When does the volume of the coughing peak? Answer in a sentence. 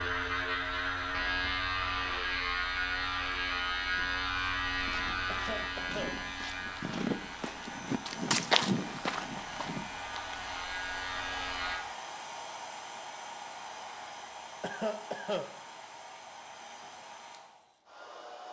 The volume of the coughing peaks at 15 seconds.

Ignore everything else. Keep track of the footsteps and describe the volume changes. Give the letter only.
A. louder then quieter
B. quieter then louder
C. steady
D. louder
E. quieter
A.